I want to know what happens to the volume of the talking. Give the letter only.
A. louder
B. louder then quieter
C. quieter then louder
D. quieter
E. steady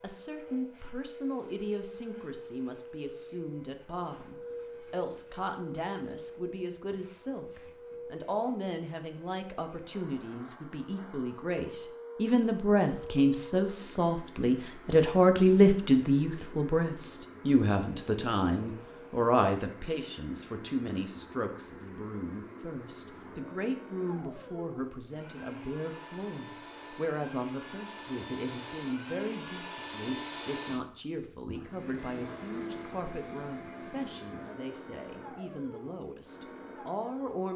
B.